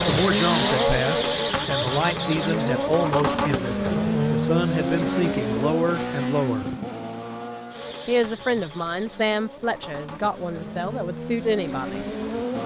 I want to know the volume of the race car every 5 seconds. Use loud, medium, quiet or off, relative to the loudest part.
loud, medium, medium.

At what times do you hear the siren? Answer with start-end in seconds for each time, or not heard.
not heard.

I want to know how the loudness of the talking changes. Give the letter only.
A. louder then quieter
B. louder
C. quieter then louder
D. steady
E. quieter
D.